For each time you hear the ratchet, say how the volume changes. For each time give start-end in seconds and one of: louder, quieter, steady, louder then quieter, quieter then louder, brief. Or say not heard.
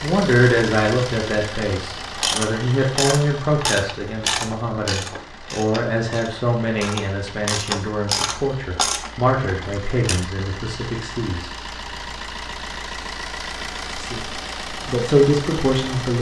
2.1-10.2 quieter then louder.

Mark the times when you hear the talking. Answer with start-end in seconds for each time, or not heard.
0.0-11.5, 13.9-16.1.